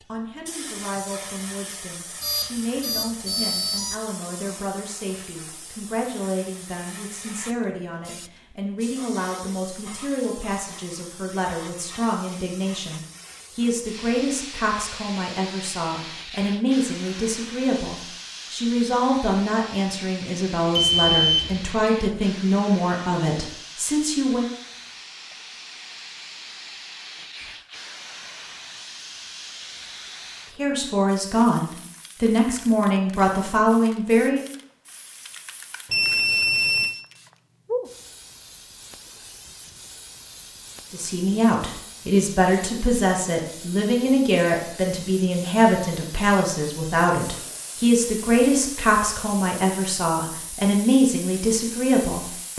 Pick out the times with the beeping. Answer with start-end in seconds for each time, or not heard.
2.2-4.0, 20.8-21.6, 35.9-37.0.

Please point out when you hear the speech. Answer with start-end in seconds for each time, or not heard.
0.1-24.5, 30.6-34.4, 40.9-52.5.